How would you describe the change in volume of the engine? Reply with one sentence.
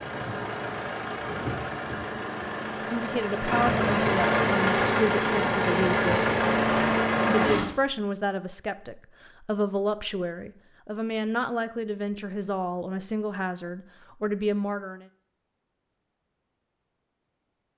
The loudness of the engine goes up.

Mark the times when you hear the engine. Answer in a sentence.
The engine can be heard from 0.0 to 7.7 s.